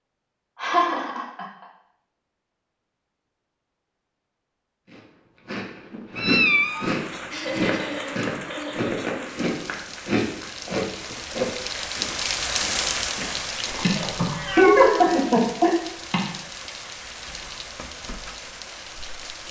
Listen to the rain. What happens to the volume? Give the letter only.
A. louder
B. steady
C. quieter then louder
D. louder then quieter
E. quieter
D.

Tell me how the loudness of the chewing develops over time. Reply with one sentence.
The loudness of the chewing goes down.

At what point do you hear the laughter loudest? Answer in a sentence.
The volume of the laughter peaks at 15 seconds.